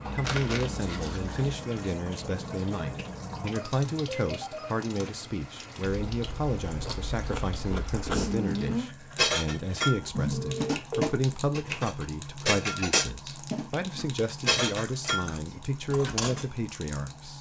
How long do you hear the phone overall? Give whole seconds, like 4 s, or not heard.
2 s.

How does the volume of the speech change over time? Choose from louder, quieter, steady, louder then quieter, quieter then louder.
steady.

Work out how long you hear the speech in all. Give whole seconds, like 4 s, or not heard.
17 s.